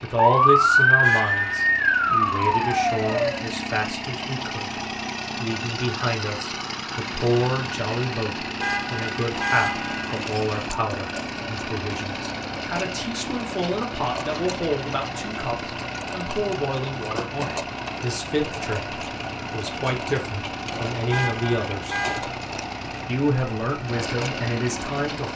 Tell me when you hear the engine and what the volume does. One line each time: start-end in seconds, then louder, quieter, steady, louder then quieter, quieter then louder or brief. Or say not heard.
0.0-25.3 steady.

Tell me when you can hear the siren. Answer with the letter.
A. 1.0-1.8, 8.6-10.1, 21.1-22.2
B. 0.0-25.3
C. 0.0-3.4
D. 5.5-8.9
C.